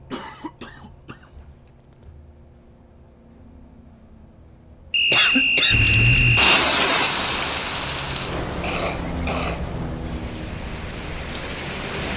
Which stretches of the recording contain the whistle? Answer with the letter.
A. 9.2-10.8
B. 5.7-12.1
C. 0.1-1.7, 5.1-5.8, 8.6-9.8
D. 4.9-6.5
D.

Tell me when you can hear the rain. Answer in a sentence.
You can hear the rain from 5.7 to 12.1 s.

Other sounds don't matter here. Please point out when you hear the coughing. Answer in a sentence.
You can hear the coughing from 0.1 to 1.7 s, from 5.1 to 5.8 s and from 8.6 to 9.8 s.